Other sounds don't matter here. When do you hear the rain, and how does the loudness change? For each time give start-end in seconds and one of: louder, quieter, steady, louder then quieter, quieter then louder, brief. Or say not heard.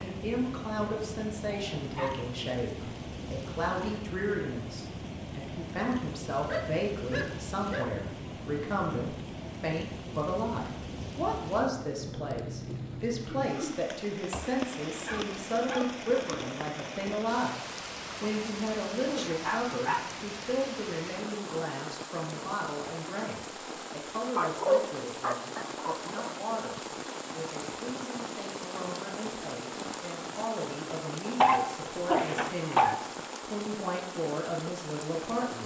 0.0-35.6 steady.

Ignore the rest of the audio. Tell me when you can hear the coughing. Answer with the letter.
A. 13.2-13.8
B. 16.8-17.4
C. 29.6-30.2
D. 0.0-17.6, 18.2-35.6
A.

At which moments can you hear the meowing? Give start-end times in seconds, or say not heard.
not heard.